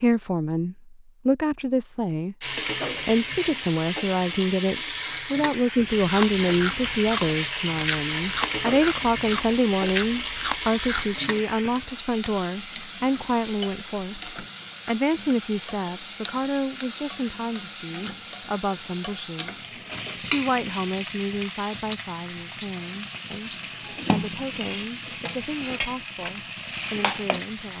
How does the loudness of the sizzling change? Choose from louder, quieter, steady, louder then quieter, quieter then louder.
steady.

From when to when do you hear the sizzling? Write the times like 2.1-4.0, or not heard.
2.4-27.7.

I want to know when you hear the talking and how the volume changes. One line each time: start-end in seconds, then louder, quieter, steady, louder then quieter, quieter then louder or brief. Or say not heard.
0.0-27.7 quieter.